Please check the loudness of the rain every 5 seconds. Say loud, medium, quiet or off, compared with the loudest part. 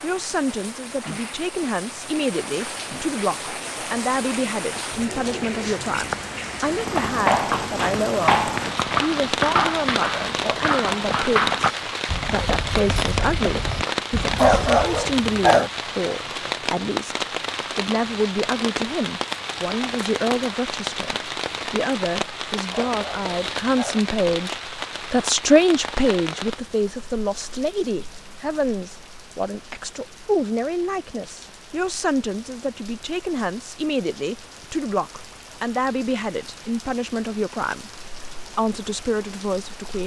medium, loud, loud, loud, loud, medium, quiet, quiet.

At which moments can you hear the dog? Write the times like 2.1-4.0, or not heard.
14.3-15.7, 22.7-24.0.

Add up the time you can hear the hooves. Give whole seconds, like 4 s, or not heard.
8 s.